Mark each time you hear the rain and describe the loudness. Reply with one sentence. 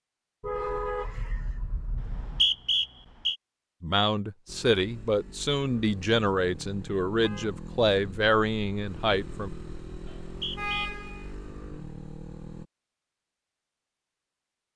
You can't hear the rain here.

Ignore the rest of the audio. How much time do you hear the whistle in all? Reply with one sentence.
The whistle can be heard for 2 seconds in total.